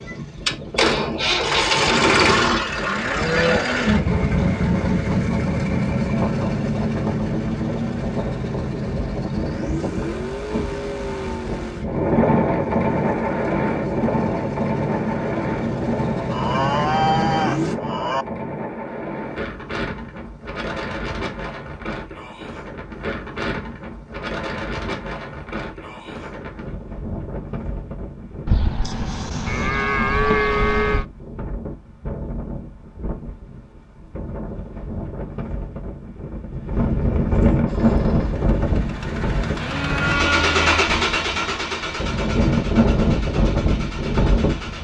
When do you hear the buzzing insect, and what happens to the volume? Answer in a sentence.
You can't hear the buzzing insect here.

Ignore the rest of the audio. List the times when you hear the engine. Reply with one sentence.
The engine can be heard from 0.0 to 17.8 s and from 37.6 to 44.8 s.